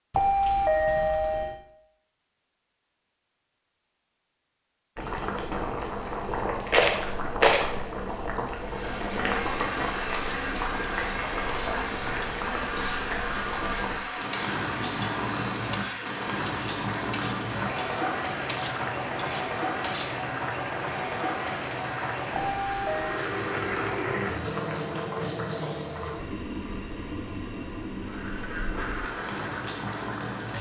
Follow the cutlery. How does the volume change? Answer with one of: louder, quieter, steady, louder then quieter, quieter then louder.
louder.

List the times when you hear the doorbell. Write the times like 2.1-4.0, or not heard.
0.1-1.6, 22.3-23.2.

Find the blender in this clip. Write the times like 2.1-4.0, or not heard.
8.6-23.8, 27.9-30.3.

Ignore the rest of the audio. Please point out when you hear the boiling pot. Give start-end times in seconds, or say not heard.
5.0-30.5.